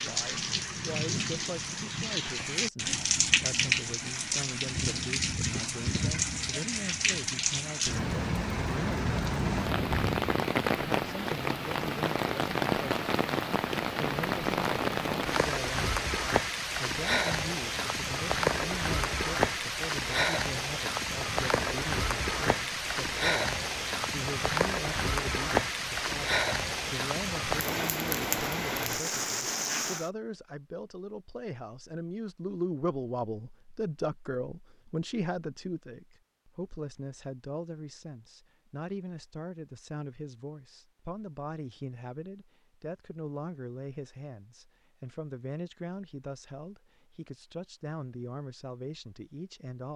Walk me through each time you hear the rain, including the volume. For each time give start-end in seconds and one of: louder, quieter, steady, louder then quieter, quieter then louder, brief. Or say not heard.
0.0-30.1 steady.